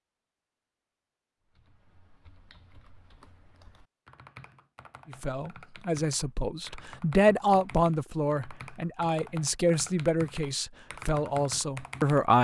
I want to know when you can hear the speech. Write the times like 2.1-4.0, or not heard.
5.1-12.3.